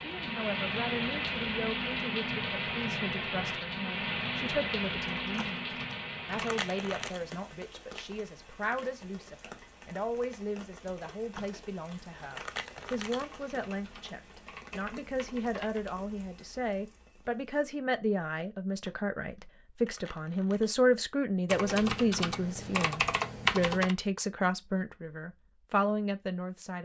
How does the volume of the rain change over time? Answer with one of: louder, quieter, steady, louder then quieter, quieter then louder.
quieter.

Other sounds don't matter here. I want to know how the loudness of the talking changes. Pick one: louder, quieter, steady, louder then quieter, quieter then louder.
louder.